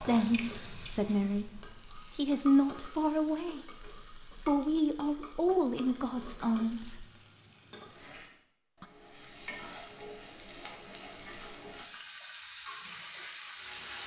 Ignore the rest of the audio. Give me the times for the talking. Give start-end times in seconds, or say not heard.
0.0-7.0.